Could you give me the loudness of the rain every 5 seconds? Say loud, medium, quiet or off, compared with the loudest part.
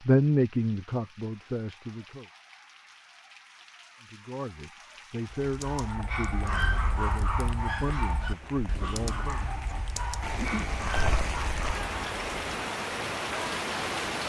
quiet, quiet, loud.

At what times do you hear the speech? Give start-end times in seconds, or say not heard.
0.1-2.2, 4.1-9.5.